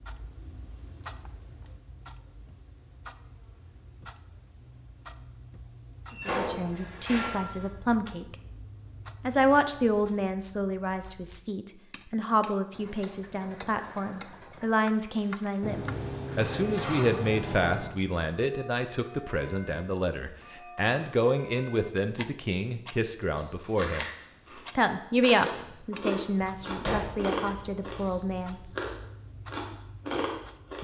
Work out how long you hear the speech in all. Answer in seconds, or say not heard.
21 s.